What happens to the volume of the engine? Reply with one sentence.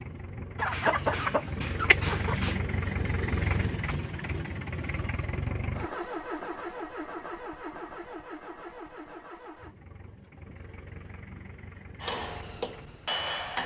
The volume of the engine goes down.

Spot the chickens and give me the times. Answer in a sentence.
You can hear the chickens from 0.6 to 2.6 s.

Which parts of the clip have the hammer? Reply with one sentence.
You can hear the hammer from 12.0 to 13.6 s.